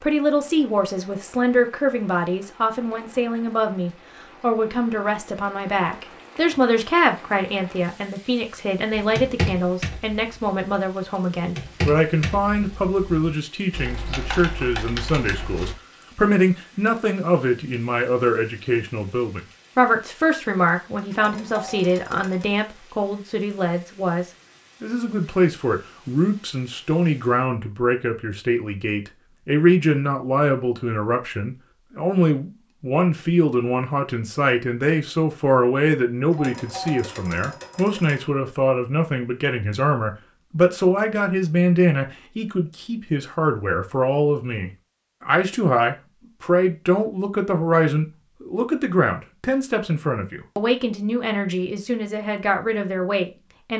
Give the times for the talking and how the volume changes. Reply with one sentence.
The talking can be heard from 0.0 to 53.7 s, at a steady volume.